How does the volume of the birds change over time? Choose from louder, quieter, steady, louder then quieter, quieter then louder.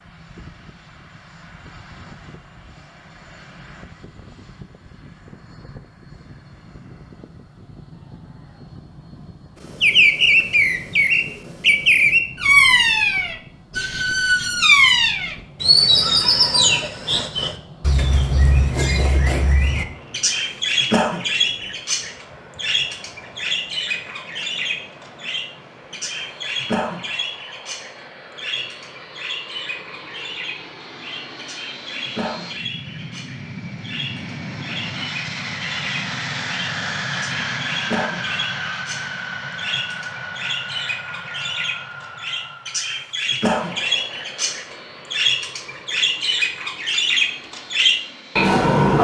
quieter then louder.